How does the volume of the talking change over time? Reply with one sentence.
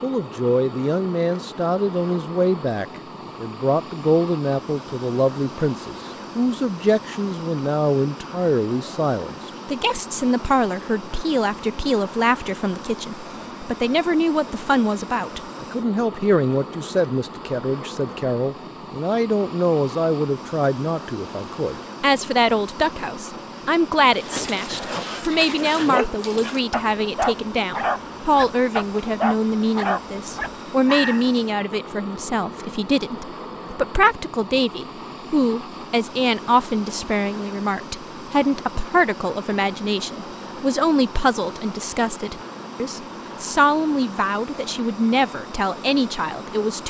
The loudness of the talking stays about the same.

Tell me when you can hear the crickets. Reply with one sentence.
You can't hear the crickets here.